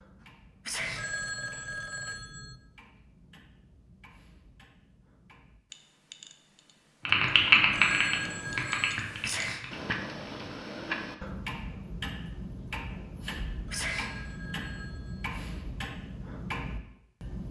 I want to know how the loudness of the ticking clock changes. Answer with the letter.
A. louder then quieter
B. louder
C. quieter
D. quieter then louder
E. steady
B.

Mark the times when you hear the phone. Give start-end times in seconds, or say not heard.
0.8-2.6, 7.5-9.1, 13.5-15.3.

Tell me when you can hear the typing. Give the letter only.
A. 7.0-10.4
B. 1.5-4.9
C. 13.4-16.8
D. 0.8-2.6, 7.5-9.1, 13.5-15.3
A.